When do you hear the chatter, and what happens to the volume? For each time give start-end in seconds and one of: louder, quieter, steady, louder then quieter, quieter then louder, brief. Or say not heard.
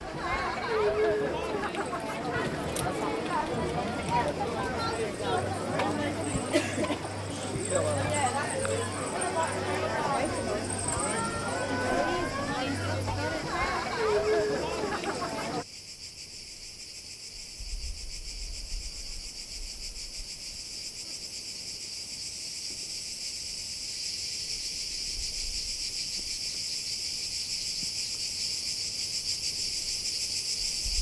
0.0-15.7 steady.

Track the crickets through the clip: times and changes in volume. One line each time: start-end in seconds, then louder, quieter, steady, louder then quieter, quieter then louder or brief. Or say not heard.
0.0-30.9 louder.